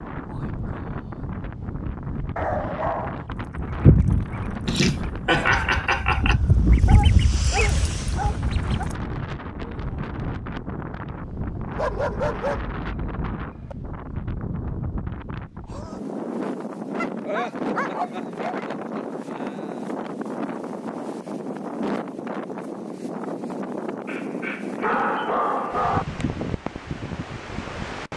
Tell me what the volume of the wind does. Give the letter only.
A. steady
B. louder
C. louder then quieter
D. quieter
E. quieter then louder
A.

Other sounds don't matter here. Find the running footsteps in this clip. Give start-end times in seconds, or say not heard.
not heard.